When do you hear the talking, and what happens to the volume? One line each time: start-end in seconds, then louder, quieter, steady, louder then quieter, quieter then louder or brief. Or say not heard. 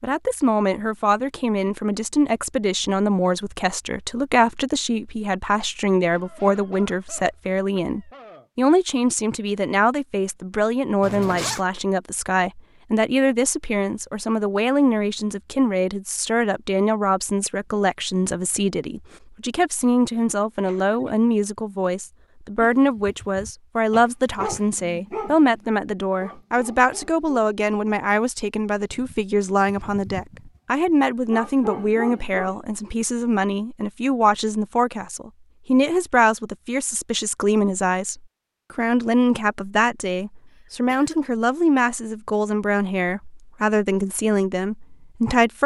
0.0-45.6 steady.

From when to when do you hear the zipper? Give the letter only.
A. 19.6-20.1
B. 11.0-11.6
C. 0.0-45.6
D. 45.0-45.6
B.